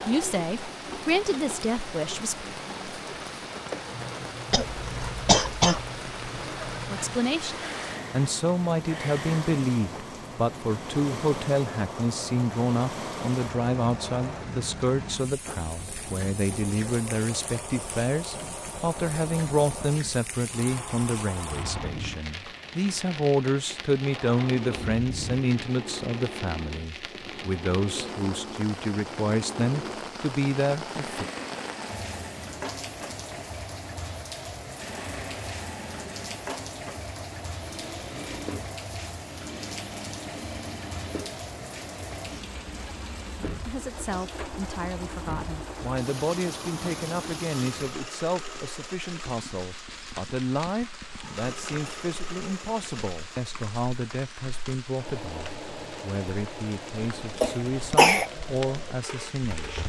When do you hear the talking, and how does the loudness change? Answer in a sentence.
You can hear the talking briefly from 0.0 to 2.5 s; from 6.8 to 31.2 s, at a steady volume; and from 43.6 to 59.8 s, at a steady volume.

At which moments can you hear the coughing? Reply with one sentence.
The coughing can be heard from 4.5 to 5.9 s and from 57.4 to 58.3 s.